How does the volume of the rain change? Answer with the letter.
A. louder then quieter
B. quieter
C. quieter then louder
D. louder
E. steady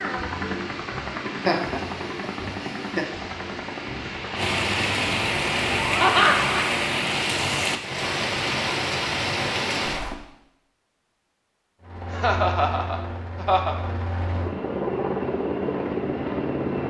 D.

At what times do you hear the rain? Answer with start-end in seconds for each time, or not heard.
0.0-10.2.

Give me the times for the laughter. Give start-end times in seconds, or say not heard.
1.4-3.0, 6.0-6.5, 12.1-13.8.